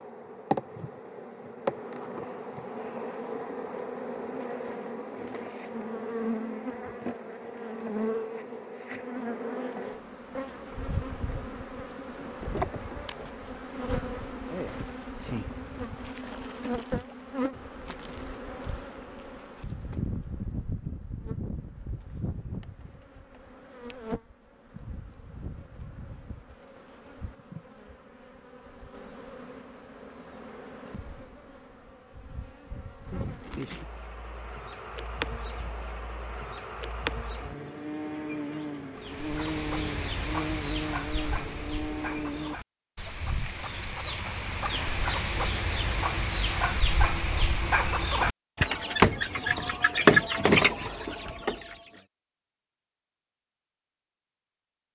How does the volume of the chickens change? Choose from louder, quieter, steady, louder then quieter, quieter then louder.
louder.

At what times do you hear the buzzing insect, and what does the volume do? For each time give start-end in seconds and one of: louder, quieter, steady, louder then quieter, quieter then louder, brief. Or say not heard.
0.0-42.5 quieter then louder.